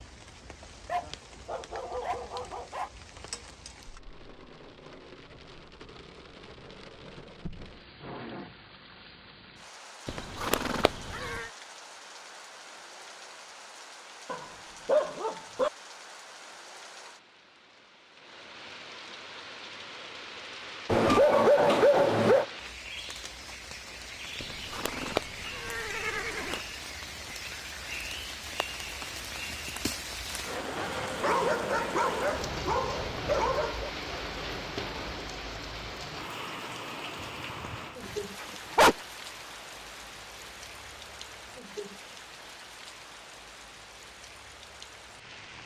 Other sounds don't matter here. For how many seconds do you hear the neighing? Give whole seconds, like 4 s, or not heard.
4 s.